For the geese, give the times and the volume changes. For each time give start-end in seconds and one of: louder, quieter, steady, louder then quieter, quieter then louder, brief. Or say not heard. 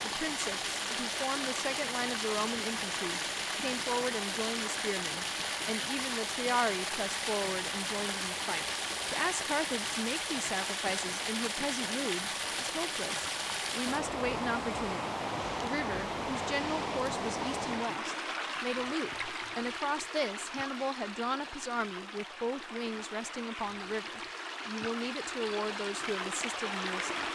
not heard.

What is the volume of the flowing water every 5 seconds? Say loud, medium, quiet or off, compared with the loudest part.
loud, loud, loud, loud, medium, loud.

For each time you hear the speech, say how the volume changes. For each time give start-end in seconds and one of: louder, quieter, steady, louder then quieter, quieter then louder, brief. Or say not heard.
0.0-27.2 steady.